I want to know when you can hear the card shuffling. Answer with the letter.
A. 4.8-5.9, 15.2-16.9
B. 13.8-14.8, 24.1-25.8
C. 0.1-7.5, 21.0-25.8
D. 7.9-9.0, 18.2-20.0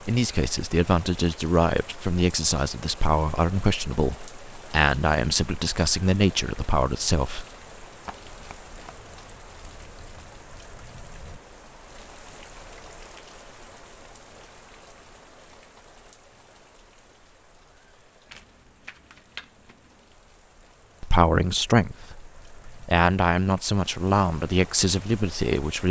D.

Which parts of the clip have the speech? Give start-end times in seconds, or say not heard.
0.1-7.5, 21.0-25.8.